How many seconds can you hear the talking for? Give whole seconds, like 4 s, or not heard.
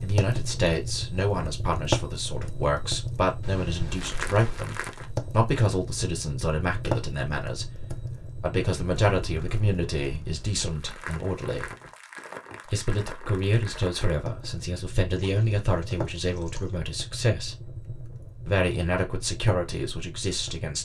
19 s.